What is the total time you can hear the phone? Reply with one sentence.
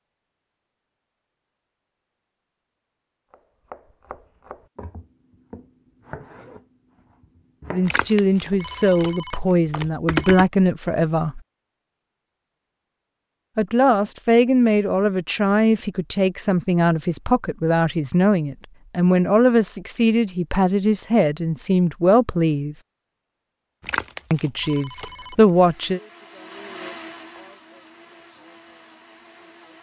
The phone can be heard for 4 seconds in total.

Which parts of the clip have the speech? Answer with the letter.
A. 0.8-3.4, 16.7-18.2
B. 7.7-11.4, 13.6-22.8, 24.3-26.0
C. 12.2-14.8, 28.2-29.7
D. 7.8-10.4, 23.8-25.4
B.